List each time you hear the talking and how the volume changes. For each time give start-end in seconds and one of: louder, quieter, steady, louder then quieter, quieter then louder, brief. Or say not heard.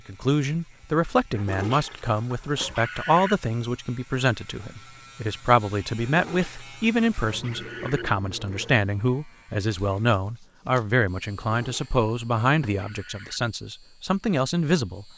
0.1-15.1 steady.